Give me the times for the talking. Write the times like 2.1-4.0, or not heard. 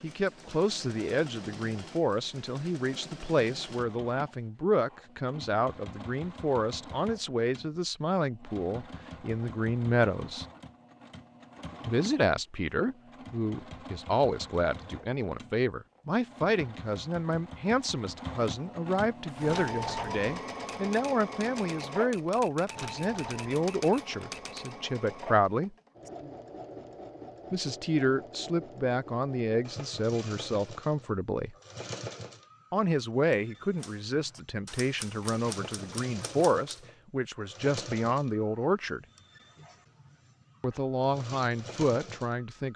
0.0-10.4, 11.8-25.7, 27.5-31.6, 32.7-39.0, 40.6-42.7.